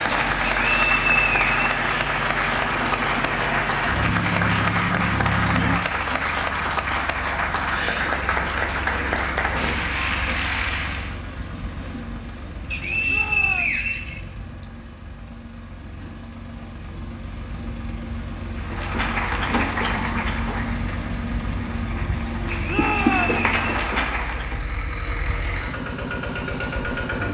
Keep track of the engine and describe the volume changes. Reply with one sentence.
The loudness of the engine goes down, then up.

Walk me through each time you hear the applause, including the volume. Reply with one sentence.
You can hear the applause from 0.0 to 11.2 s, at a steady volume; and from 18.6 to 24.6 s, getting quieter then louder.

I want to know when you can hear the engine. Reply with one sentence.
You can hear the engine from 0.0 to 27.2 s.